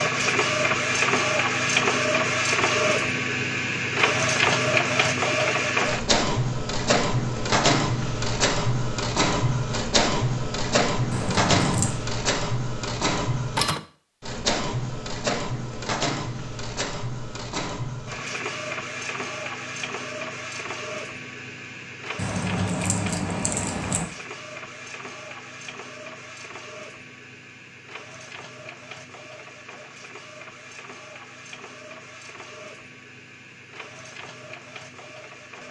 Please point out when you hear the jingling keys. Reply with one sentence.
You can hear the jingling keys from 11.1 to 11.9 s and from 22.1 to 24.1 s.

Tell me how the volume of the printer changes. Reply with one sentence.
The loudness of the printer goes down.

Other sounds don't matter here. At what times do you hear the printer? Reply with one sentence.
You can hear the printer from 0.0 to 35.6 s.